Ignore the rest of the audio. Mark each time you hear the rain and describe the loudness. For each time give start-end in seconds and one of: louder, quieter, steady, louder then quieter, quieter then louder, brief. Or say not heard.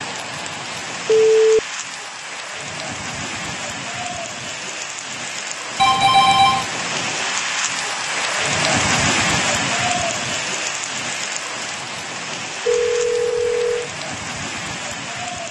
0.0-15.4 louder then quieter.